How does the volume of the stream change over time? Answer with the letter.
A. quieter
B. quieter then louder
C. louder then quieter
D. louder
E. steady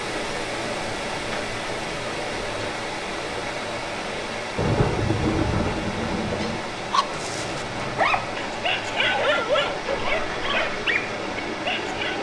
E.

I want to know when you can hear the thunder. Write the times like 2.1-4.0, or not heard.
4.5-6.6.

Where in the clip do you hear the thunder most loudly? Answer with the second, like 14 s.
5 s.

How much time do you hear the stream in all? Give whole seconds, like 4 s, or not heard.
12 s.